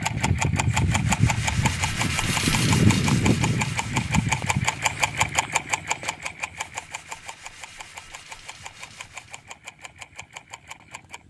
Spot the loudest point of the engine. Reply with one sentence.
The volume of the engine peaks at 3 seconds.